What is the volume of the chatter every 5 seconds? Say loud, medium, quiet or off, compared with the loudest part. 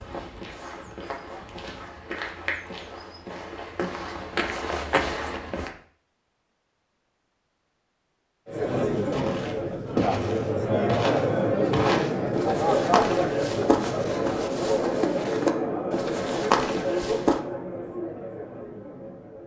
off, loud, loud, medium.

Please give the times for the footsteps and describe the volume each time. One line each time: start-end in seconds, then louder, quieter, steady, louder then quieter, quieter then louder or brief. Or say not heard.
0.0-5.7 louder
9.1-17.4 steady.